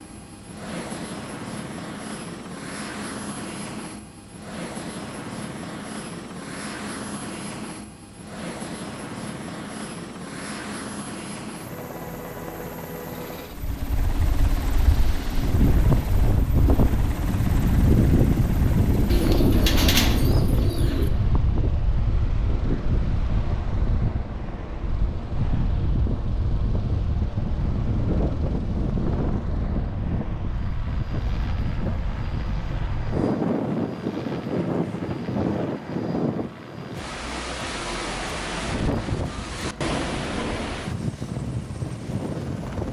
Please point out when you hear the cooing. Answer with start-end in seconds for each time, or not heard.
19.1-21.1.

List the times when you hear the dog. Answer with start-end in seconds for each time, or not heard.
not heard.